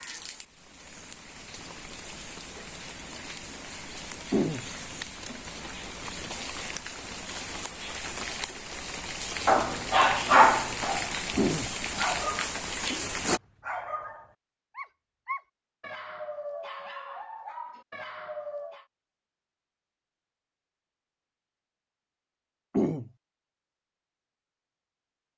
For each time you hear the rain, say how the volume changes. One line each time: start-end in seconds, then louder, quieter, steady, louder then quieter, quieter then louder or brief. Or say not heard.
0.0-13.4 louder.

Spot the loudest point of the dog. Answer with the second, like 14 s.
10 s.